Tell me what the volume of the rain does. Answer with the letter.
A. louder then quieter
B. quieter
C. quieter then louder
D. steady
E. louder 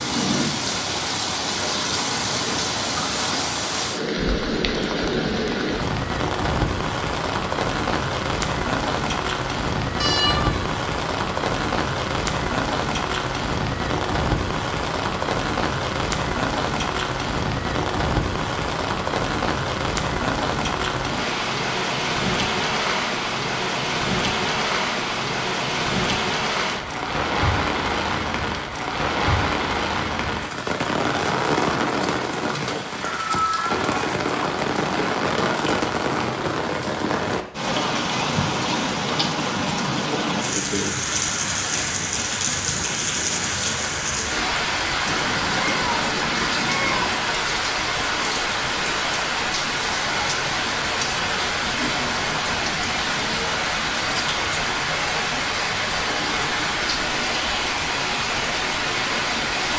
D.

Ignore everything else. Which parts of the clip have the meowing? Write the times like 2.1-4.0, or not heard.
10.0-10.7, 33.0-33.8, 45.0-47.0.